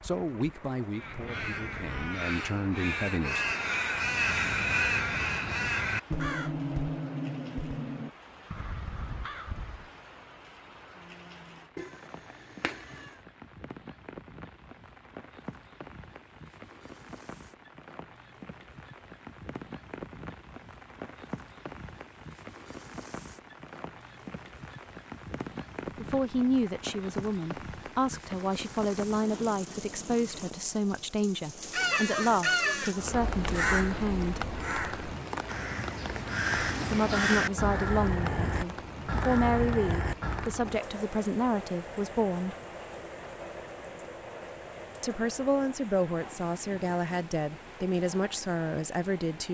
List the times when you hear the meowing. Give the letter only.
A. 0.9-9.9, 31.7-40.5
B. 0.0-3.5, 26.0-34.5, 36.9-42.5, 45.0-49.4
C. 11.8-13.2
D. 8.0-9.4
C.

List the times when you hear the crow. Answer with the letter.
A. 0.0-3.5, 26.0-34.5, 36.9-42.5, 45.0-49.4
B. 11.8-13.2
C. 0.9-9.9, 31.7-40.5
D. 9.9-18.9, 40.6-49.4
C.